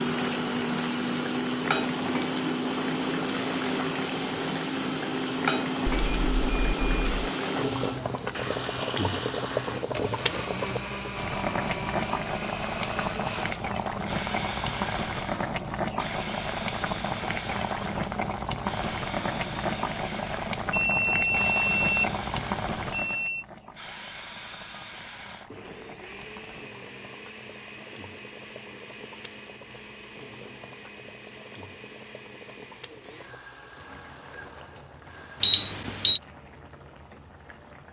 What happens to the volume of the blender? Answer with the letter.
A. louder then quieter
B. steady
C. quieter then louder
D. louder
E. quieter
E.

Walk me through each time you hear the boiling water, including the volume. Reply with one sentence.
The boiling water can be heard from 0.0 to 37.8 s, getting quieter.